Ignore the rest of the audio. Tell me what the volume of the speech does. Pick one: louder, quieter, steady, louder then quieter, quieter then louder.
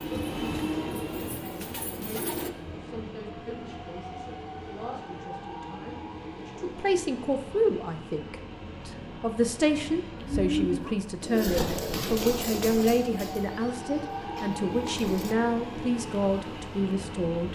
louder.